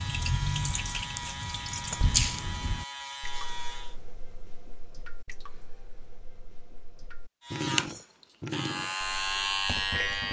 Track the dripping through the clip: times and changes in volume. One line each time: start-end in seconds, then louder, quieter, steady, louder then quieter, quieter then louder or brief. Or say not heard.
0.0-10.2 quieter then louder.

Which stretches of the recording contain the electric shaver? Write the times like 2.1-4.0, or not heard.
0.0-4.0, 7.4-10.2.